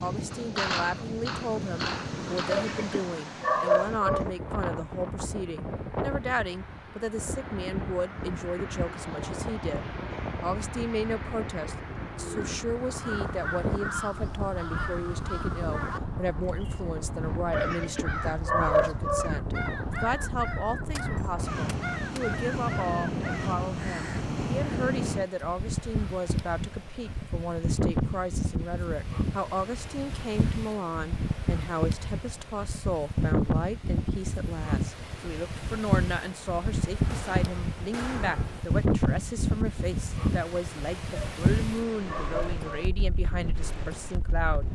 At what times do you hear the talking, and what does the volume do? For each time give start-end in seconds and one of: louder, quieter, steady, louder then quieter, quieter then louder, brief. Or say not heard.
0.0-44.6 steady.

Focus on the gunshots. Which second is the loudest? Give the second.
1 s.